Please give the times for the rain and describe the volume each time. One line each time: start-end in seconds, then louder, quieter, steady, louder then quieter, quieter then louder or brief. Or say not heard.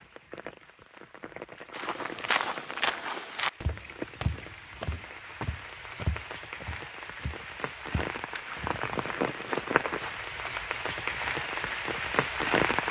0.0-12.8 louder.